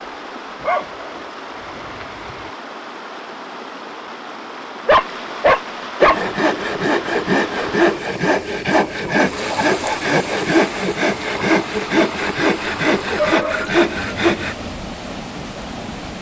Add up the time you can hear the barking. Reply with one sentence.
You can hear the barking for 5 seconds altogether.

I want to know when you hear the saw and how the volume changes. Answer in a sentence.
You can hear the saw from 6.0 to 14.6 s, at a steady volume.